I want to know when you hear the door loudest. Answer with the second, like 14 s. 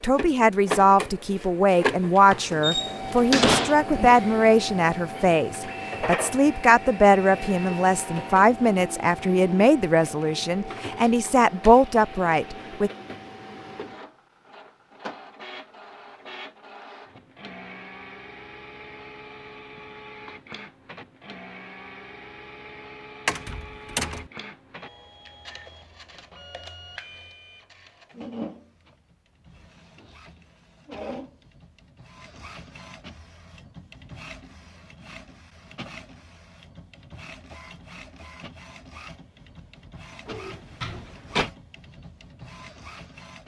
3 s.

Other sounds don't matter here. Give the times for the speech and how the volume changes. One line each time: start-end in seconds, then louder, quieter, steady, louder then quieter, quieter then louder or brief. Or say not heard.
0.0-12.9 steady.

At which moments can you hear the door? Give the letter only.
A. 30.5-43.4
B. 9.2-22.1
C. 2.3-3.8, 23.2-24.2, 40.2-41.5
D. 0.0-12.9
C.